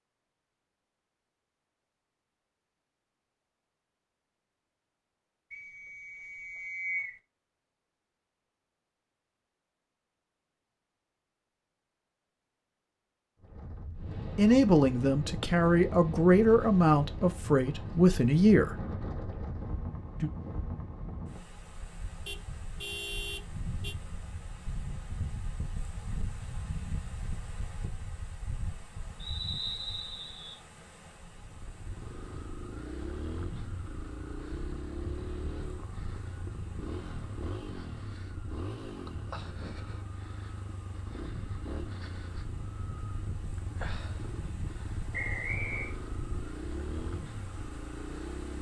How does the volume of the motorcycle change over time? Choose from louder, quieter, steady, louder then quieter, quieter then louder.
steady.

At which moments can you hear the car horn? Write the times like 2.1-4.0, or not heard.
22.2-23.9.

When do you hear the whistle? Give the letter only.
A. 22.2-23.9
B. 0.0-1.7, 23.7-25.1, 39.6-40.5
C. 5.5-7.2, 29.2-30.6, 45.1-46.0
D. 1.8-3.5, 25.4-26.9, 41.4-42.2
C.